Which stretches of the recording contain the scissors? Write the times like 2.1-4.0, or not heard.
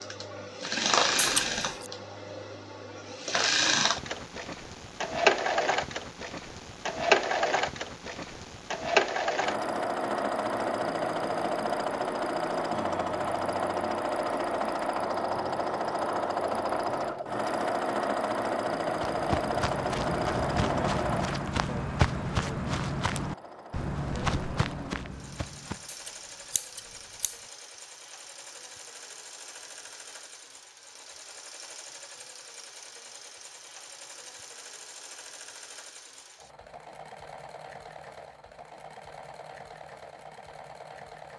1.1-1.9, 25.9-27.4.